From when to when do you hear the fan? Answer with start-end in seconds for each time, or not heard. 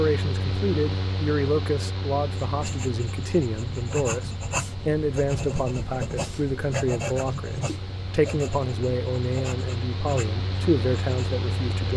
0.0-11.9.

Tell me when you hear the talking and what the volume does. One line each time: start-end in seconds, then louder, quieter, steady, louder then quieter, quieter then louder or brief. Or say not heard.
0.0-11.9 steady.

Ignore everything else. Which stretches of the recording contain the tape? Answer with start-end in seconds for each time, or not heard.
not heard.